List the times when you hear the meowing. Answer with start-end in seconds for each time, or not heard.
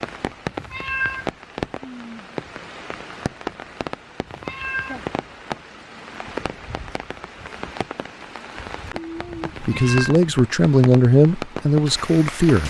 0.6-1.3, 4.2-5.0, 9.5-10.2.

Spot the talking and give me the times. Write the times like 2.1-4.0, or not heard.
9.6-12.6.